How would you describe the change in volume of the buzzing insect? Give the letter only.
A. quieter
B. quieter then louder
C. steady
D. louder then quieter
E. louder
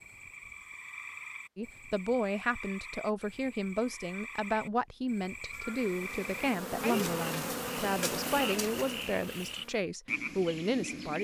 D.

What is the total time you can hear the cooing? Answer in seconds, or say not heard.
not heard.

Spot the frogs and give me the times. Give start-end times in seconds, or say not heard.
0.0-11.2.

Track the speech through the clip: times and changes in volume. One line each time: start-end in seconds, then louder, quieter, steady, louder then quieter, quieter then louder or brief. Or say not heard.
1.6-11.2 steady.